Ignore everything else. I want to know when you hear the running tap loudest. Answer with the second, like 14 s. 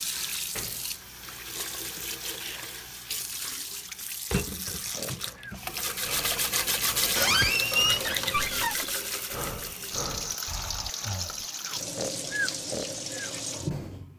7 s.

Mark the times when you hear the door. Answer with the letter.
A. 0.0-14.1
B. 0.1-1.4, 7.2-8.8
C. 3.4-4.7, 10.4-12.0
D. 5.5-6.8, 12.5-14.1
B.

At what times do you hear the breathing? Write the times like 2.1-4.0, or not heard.
4.9-14.1.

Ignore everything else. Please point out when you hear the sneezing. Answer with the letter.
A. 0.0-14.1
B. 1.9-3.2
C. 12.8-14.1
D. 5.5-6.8
B.